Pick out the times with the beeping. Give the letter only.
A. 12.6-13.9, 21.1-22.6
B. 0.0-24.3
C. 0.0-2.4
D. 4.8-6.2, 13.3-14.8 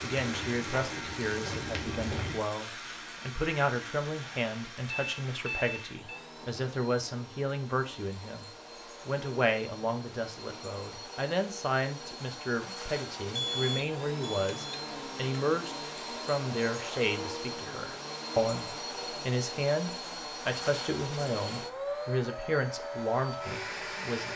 D.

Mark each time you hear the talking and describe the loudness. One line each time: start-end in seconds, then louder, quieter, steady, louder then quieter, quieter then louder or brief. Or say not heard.
0.0-24.3 steady.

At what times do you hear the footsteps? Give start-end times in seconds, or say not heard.
0.0-2.4.